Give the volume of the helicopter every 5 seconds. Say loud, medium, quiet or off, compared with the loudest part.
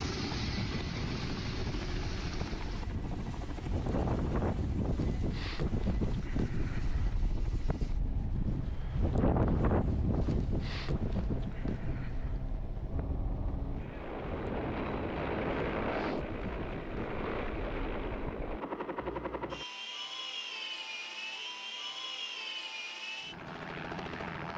loud, medium, medium, loud, loud.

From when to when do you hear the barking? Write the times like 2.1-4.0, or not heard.
not heard.